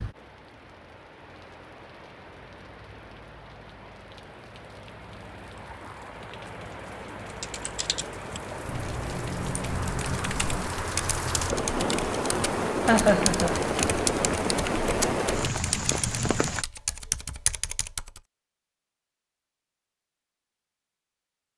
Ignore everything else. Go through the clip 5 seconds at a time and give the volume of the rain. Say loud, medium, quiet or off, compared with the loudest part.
quiet, medium, loud, loud, off.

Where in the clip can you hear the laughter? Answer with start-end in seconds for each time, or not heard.
12.8-13.6.